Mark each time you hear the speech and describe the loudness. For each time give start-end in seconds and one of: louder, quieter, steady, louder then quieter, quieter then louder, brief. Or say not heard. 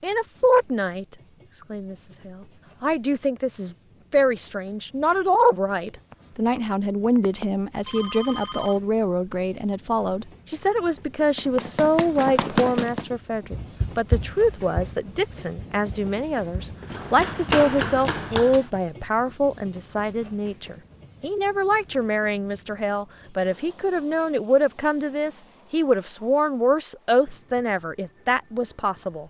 0.0-29.2 steady.